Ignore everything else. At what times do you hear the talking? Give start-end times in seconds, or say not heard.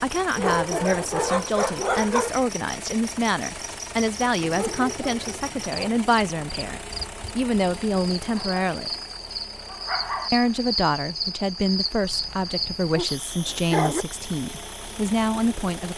0.0-8.9, 10.3-15.9.